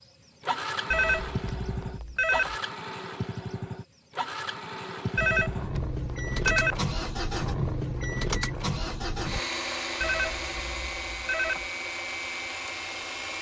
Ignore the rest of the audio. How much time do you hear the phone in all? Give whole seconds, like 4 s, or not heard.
5 s.